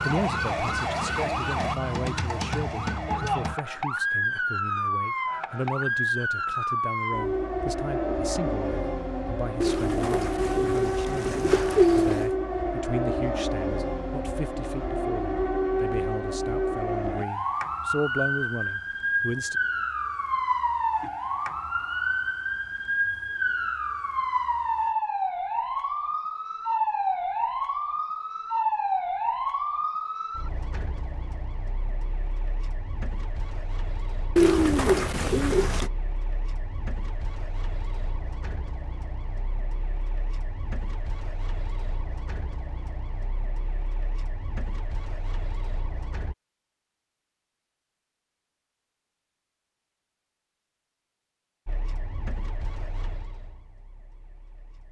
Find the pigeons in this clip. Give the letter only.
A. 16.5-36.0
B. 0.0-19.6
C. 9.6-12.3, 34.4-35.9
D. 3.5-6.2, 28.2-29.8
C.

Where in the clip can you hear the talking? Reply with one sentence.
You can hear the talking from 0.0 to 19.6 s.